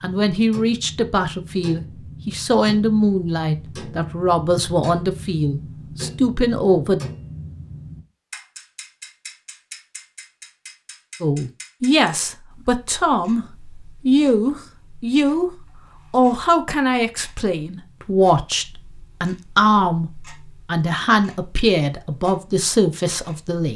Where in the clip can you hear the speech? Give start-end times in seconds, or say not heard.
0.0-7.0, 11.2-23.7.